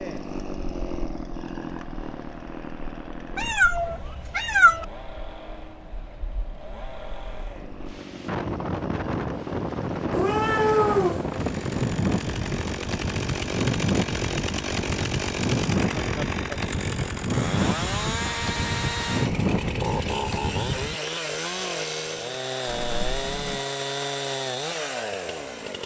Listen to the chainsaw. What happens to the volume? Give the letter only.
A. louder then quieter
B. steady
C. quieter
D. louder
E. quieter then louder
D.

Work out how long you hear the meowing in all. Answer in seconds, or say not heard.
4 s.